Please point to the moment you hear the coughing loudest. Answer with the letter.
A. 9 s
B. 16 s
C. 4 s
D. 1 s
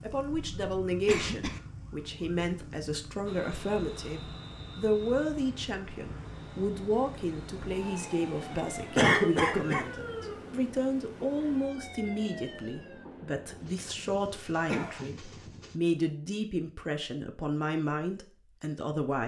A.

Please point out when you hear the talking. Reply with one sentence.
You can hear the talking from 0.0 to 19.2 s.